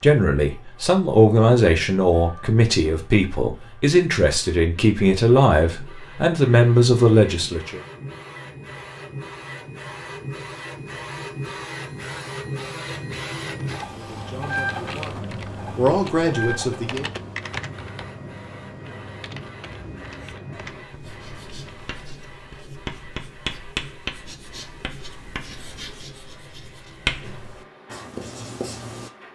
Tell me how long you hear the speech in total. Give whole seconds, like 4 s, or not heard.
11 s.